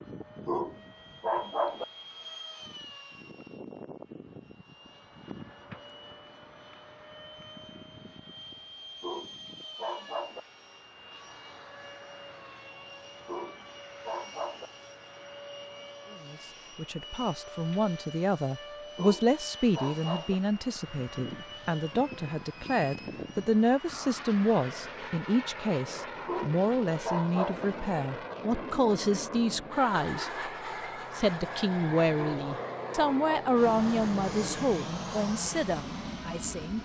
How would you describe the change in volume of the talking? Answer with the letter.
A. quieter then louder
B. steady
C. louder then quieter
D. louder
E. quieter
B.